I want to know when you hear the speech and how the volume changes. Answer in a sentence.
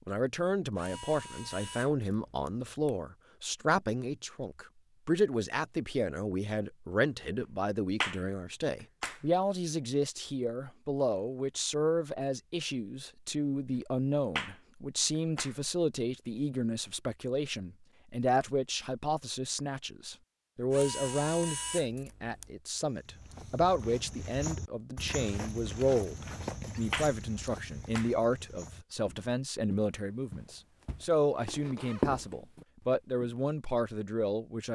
The speech can be heard from 0.1 to 34.7 s, at a steady volume.